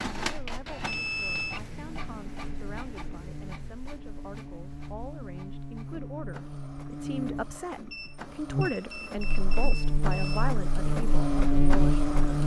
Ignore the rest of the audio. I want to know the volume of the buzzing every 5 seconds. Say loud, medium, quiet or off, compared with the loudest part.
quiet, medium, loud.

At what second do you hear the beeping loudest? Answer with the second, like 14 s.
1 s.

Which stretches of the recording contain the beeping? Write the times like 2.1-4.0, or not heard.
0.8-1.6, 7.9-10.4.